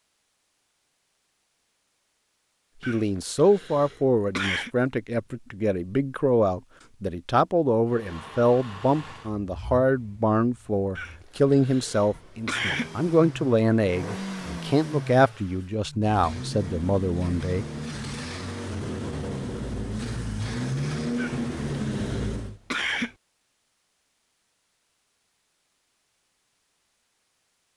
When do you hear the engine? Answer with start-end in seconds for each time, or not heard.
7.8-22.6.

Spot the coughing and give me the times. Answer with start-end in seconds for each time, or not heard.
2.8-4.7, 10.9-12.9, 21.1-23.1.